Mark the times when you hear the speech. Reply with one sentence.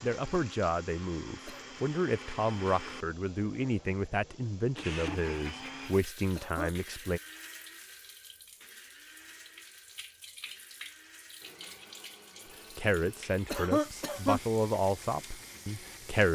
The speech can be heard from 0.0 to 7.2 s and from 12.8 to 16.3 s.